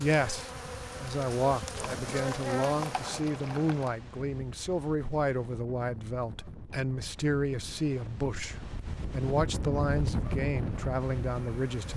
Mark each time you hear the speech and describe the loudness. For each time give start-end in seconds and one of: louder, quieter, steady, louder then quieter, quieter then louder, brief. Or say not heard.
0.0-11.9 steady.